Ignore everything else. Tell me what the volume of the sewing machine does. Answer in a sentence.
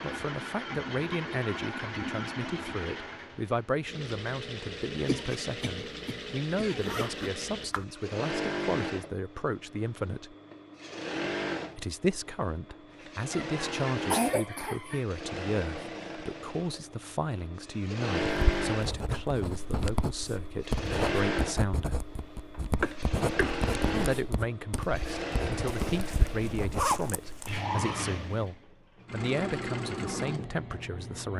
The loudness of the sewing machine stays about the same.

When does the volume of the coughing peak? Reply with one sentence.
The volume of the coughing peaks at 14 seconds.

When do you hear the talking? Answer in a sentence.
The talking can be heard from 0.0 to 10.3 s, from 11.8 to 22.1 s and from 23.9 to 31.3 s.